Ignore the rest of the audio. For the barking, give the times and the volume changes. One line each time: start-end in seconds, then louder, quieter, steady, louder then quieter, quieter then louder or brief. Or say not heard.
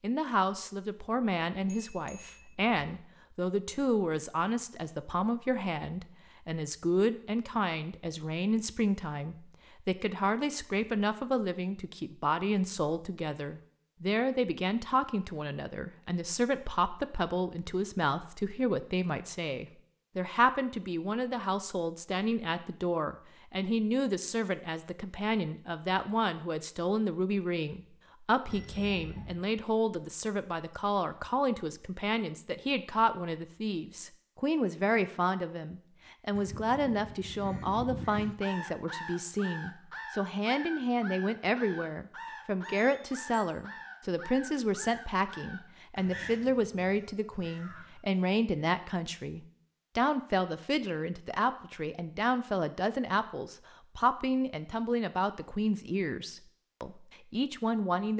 not heard.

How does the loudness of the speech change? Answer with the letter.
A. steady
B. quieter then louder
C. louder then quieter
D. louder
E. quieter
A.